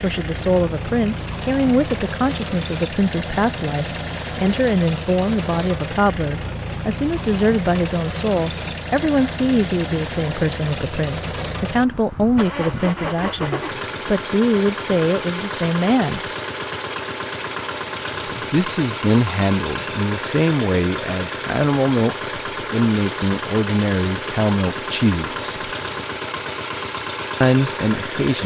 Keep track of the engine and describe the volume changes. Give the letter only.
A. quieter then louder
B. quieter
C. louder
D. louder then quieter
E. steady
E.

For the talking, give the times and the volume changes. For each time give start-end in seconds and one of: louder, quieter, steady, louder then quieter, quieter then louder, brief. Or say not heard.
0.0-16.2 steady
18.4-25.7 steady
27.4-28.4 brief.